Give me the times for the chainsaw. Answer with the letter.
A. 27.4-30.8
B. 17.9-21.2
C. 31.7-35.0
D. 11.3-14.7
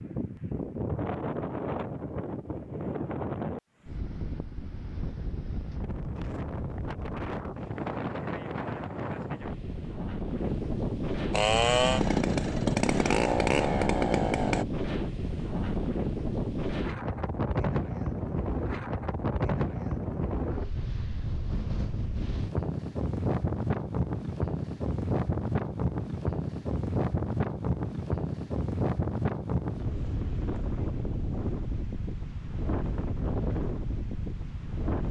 D.